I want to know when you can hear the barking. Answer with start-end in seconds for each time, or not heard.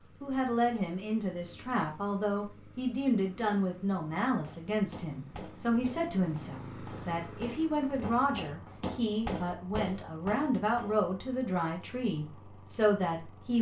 not heard.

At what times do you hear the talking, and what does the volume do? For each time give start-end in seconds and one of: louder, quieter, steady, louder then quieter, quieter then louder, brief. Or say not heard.
0.2-13.5 steady.